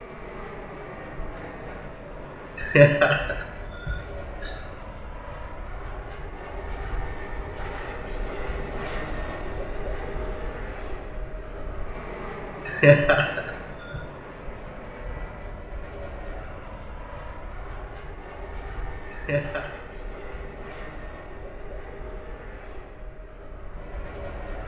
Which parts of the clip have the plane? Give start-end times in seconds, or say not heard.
0.0-24.6.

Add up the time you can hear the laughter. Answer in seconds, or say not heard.
4 s.